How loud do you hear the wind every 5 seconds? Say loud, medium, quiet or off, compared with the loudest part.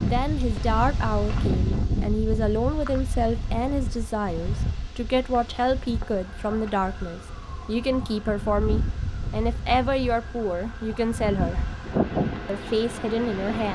loud, medium, loud.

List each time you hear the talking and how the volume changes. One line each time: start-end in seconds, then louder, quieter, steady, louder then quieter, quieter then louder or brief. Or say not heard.
0.0-11.7 steady
12.4-13.7 brief.